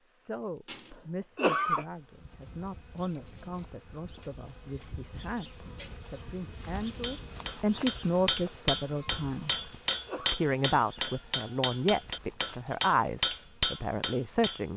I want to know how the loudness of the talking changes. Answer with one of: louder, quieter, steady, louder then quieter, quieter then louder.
louder.